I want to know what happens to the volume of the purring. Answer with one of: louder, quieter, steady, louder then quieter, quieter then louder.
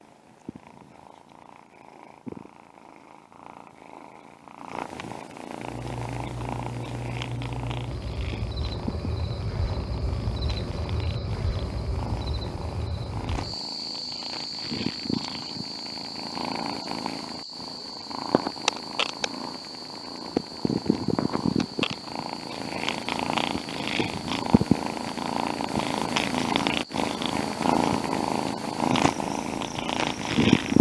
louder.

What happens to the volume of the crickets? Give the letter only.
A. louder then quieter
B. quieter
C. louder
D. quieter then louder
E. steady
B.